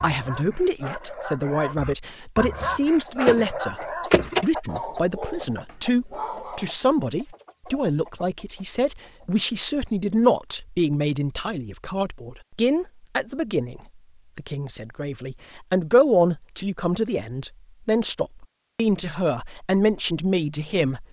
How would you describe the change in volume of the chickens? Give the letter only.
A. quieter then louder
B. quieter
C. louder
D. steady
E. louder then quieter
B.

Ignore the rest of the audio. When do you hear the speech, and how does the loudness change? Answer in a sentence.
The speech can be heard from 0.0 to 21.0 s, at a steady volume.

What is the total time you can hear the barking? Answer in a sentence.
The barking can be heard for 7 seconds in total.